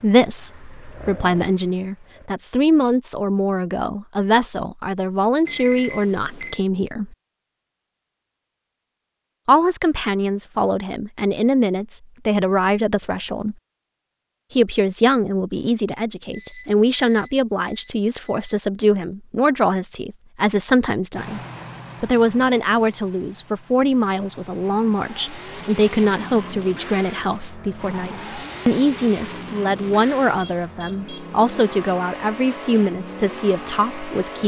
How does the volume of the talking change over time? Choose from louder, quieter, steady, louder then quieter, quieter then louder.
steady.